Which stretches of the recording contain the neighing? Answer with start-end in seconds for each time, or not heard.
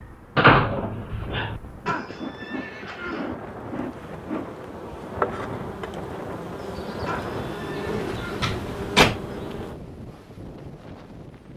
1.9-3.4, 7.0-8.6.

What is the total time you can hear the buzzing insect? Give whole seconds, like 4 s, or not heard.
10 s.